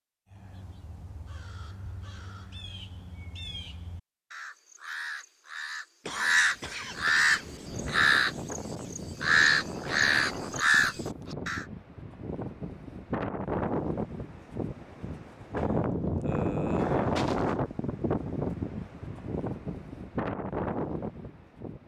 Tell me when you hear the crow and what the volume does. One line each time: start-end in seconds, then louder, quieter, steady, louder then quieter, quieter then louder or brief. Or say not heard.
0.3-11.7 louder.